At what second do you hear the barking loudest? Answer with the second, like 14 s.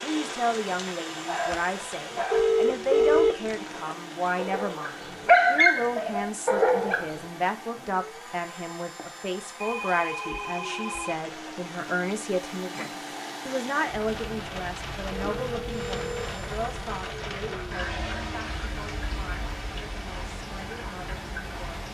5 s.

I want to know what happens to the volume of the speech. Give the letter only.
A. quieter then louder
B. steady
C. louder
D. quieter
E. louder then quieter
D.